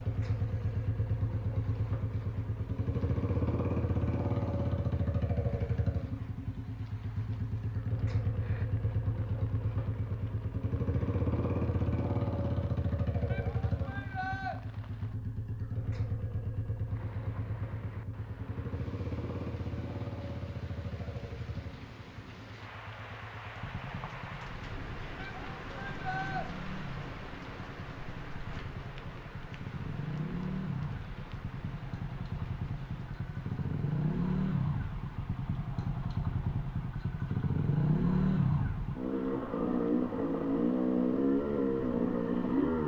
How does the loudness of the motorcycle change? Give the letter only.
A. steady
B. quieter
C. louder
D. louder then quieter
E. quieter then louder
E.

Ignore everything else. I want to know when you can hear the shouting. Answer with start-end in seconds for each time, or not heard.
13.3-14.6, 25.1-26.4.